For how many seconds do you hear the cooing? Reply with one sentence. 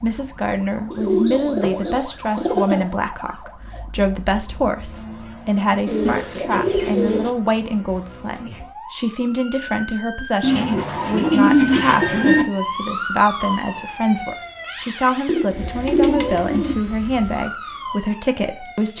The cooing can be heard for 7 seconds in total.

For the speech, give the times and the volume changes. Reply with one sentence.
You can hear the speech from 0.0 to 18.9 s, at a steady volume.